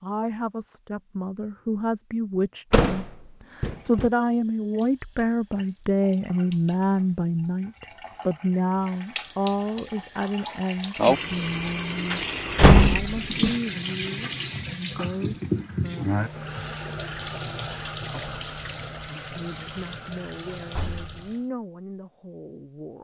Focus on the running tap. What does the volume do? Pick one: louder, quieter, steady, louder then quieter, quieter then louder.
louder then quieter.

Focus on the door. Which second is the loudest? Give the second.
13 s.